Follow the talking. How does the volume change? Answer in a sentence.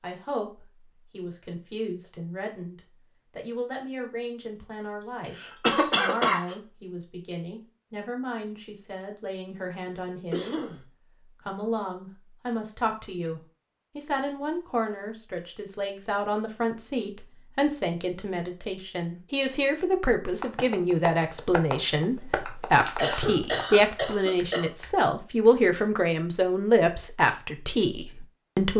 The loudness of the talking goes up.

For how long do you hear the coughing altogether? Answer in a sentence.
The coughing can be heard for 4 seconds in total.